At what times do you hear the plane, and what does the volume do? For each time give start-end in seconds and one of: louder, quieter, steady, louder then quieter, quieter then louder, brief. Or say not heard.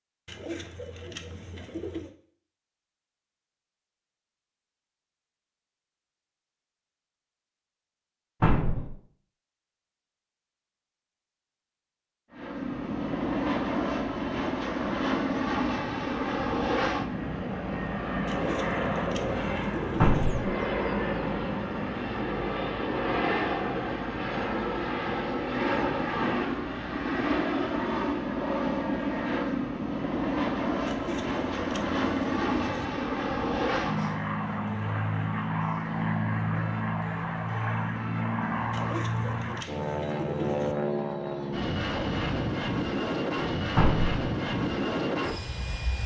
12.3-46.0 steady.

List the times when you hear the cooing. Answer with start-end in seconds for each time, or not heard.
0.2-2.1, 18.2-20.3, 30.9-32.9, 38.7-40.8.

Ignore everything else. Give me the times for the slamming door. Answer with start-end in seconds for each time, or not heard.
8.4-8.9, 19.9-20.4, 43.8-44.2.